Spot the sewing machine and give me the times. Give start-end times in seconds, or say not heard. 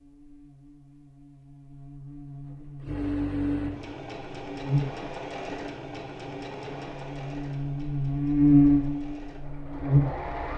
2.5-10.5.